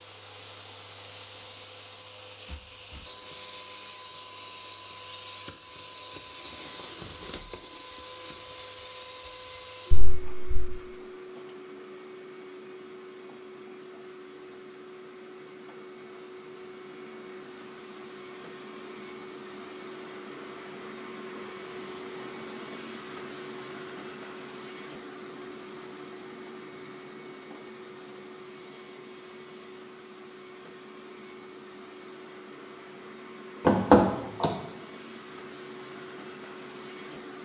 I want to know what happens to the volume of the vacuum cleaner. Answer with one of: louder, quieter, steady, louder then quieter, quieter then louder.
steady.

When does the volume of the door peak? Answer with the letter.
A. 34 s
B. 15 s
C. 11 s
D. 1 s
A.